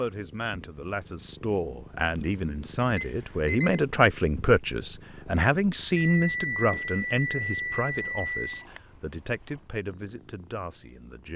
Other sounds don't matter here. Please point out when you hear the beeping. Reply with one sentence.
The beeping can be heard from 3.0 to 3.8 s and from 6.0 to 8.7 s.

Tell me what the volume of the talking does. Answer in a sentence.
The volume of the talking goes up, then down.